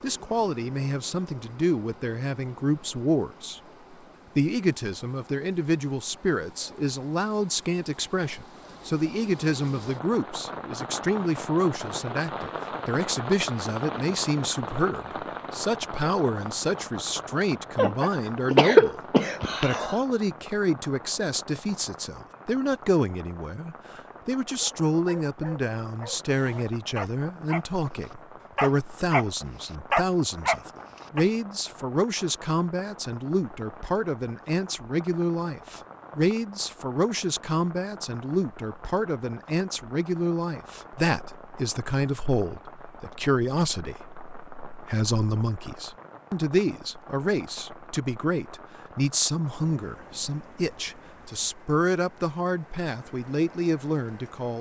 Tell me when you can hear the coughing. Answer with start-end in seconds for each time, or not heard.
17.8-20.0.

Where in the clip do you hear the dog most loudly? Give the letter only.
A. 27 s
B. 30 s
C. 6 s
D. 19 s
B.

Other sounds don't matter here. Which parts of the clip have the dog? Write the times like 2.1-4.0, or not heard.
24.5-27.6, 28.6-29.2, 29.9-31.2.